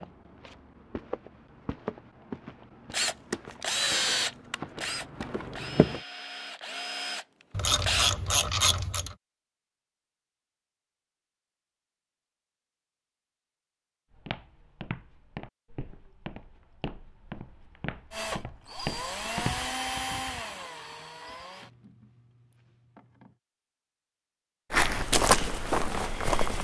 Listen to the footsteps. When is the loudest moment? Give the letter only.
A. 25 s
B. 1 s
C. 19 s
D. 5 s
A.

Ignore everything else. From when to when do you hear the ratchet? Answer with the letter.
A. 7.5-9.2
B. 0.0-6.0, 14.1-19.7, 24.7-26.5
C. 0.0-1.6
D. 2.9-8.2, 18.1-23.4
A.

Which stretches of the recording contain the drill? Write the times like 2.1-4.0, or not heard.
2.9-8.2, 18.1-23.4.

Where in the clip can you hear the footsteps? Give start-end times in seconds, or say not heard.
0.0-6.0, 14.1-19.7, 24.7-26.5.